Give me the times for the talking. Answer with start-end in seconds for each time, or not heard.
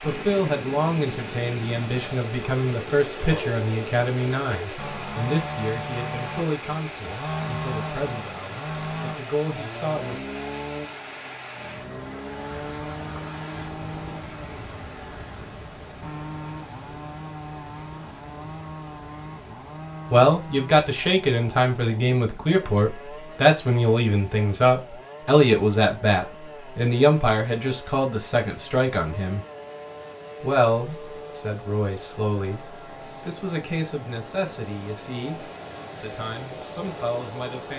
0.0-10.2, 20.1-29.4, 30.4-37.7.